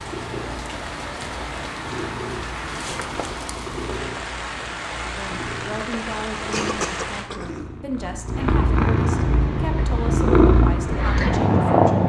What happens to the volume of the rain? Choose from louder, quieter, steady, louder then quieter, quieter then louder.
steady.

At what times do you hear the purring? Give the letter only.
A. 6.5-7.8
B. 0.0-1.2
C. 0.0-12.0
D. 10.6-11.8
C.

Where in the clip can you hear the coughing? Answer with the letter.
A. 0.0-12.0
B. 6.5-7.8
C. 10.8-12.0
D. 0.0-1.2
B.